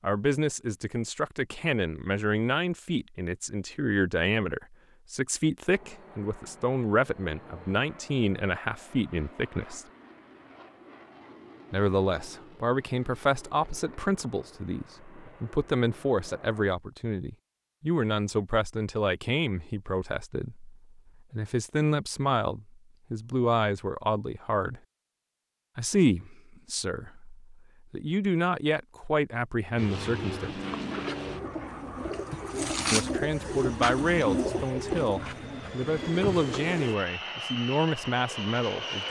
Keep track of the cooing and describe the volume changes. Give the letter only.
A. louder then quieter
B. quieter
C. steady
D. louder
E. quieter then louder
A.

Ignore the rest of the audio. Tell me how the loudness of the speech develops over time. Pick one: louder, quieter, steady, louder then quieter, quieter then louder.
steady.